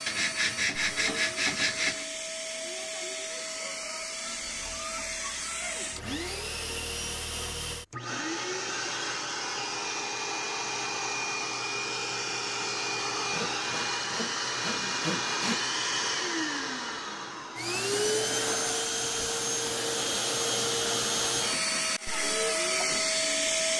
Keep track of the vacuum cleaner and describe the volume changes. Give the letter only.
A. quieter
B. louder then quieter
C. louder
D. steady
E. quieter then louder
C.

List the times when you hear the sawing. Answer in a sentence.
The sawing can be heard from 0.1 to 2.0 s and from 13.3 to 15.6 s.